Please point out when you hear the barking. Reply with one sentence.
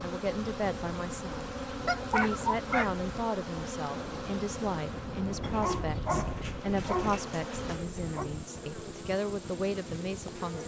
You can hear the barking from 1.9 to 2.9 s and from 5.4 to 8.3 s.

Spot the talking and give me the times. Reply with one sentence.
The talking can be heard from 0.0 to 1.4 s and from 2.1 to 10.6 s.